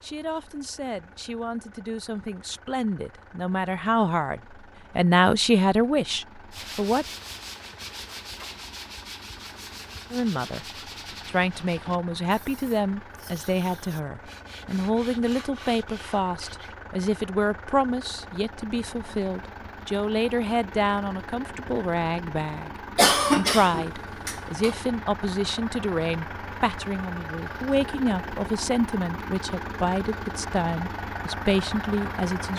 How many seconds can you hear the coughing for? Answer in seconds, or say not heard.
2 s.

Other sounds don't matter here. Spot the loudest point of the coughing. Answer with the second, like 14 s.
23 s.